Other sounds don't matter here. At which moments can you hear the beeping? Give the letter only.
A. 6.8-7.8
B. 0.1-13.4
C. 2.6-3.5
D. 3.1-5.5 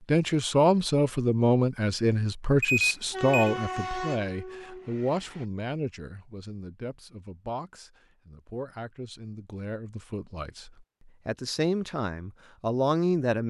C.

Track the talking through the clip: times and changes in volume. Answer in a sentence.
The talking can be heard from 0.1 to 13.4 s, getting quieter then louder.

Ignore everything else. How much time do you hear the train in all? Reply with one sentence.
The train can be heard for 2 seconds in total.